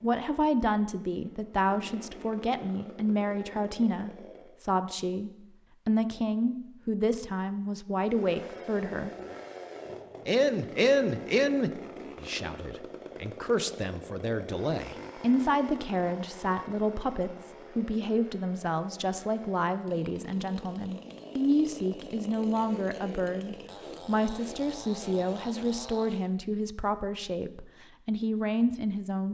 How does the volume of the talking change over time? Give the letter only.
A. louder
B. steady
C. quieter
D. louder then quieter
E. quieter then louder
B.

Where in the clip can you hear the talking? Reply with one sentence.
You can hear the talking from 0.0 to 9.2 s and from 10.2 to 29.2 s.